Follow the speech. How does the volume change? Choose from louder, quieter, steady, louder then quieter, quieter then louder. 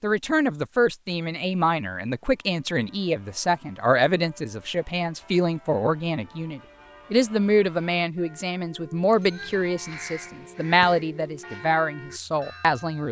steady.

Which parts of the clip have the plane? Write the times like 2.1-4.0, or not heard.
not heard.